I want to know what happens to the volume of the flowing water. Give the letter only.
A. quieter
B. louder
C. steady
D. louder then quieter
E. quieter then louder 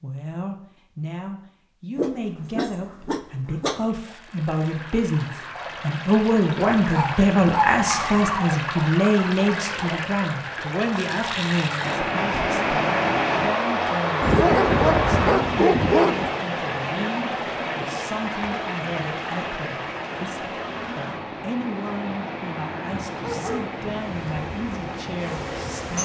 D.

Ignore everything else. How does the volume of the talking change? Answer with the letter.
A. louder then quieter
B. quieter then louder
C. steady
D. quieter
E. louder
A.